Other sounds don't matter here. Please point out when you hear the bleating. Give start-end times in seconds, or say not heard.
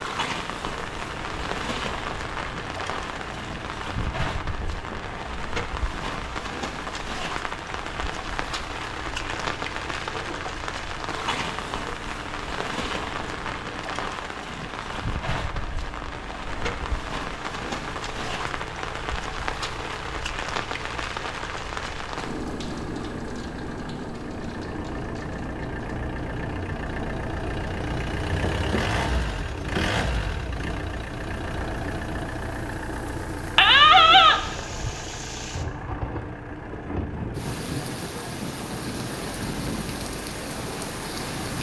33.5-35.0.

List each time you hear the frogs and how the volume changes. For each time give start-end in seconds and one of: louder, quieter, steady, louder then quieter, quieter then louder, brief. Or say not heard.
not heard.